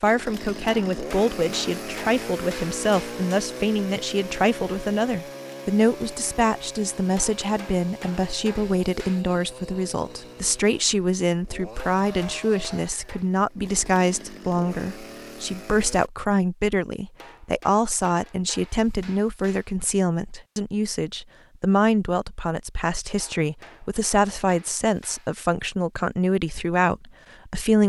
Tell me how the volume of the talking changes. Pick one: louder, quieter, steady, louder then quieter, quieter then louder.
steady.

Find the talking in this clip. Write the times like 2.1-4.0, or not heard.
0.0-27.8.